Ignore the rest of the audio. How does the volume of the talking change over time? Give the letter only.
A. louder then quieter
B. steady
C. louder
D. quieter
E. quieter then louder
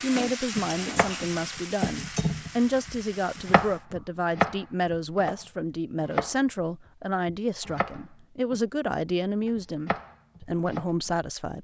B.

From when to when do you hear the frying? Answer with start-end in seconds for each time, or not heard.
0.0-3.9.